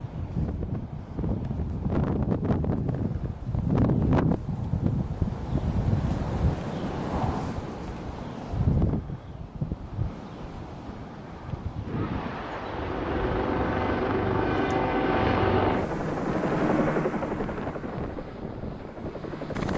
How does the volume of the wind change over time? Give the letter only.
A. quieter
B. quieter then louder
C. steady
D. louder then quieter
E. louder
A.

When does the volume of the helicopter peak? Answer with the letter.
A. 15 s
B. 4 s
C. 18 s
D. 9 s
A.